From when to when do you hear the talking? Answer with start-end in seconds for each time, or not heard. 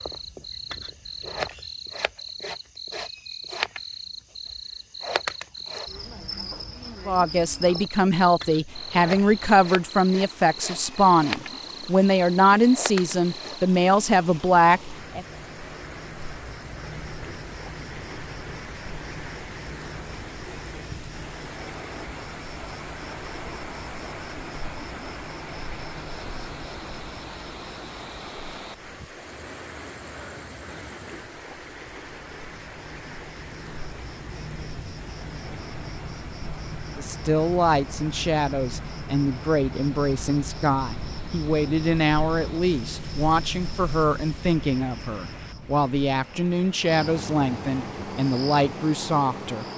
7.0-15.2, 37.0-49.6.